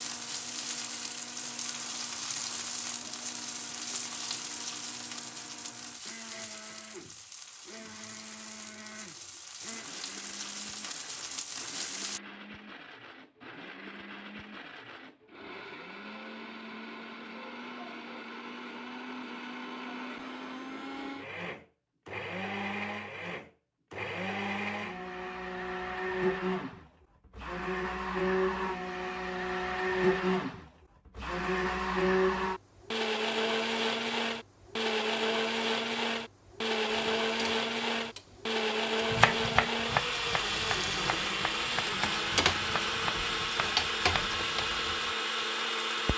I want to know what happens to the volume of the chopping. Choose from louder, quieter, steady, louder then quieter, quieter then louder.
quieter.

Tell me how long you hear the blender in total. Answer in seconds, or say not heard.
46 s.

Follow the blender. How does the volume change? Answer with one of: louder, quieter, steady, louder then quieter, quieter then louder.
louder.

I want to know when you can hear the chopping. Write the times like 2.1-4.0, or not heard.
39.1-44.7.